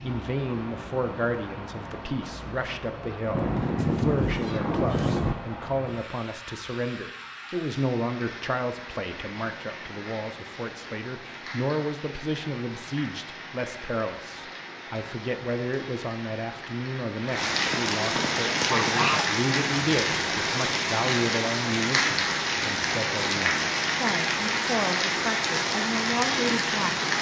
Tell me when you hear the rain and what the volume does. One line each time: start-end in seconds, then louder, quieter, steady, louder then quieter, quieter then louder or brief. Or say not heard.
0.0-27.1 louder.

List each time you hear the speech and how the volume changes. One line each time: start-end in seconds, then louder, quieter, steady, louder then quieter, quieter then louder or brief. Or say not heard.
0.0-27.1 steady.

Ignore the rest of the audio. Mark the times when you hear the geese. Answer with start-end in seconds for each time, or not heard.
3.3-5.3, 17.7-19.2.